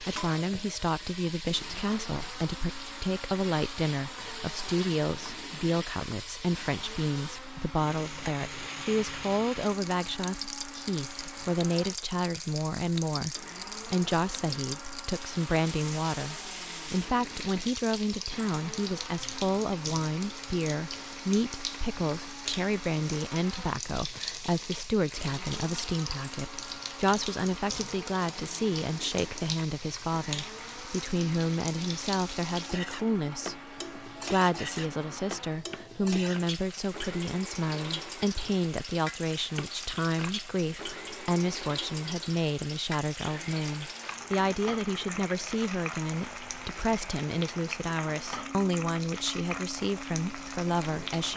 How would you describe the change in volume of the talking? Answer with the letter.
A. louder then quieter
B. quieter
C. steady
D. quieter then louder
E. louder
C.